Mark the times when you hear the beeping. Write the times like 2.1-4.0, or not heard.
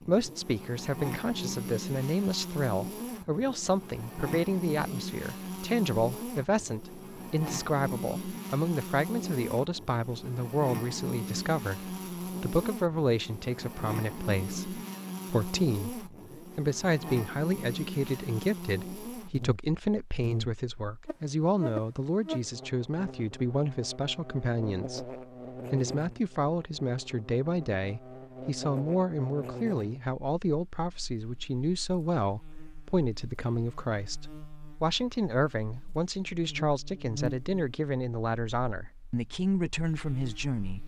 not heard.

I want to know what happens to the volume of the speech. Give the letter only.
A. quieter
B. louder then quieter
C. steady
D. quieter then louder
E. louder
C.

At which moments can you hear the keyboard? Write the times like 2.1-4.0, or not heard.
not heard.